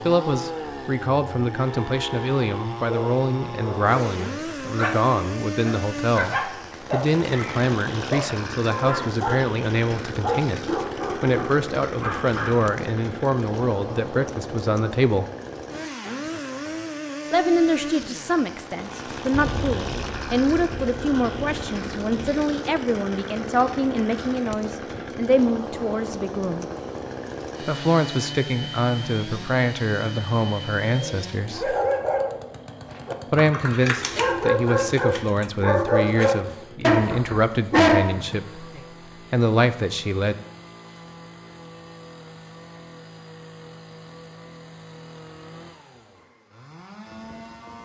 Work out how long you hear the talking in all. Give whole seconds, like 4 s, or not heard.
35 s.